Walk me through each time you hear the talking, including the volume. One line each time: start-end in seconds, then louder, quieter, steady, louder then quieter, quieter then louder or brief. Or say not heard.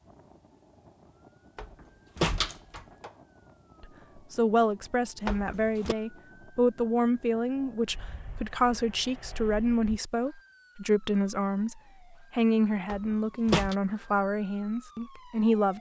3.8-15.7 steady.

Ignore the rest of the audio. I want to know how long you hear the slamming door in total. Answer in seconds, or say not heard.
3 s.